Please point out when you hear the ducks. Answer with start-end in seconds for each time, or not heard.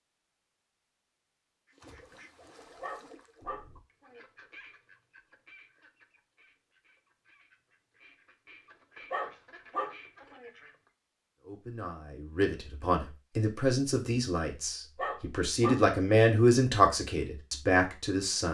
1.6-10.9.